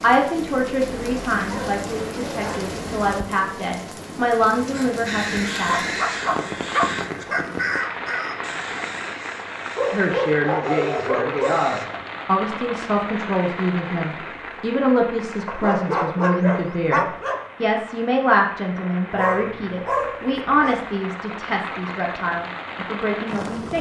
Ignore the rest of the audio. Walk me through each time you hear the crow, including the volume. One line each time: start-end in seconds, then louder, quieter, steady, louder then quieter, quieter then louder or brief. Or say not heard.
4.7-11.8 quieter.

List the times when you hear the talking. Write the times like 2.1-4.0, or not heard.
0.0-5.8, 9.9-23.7.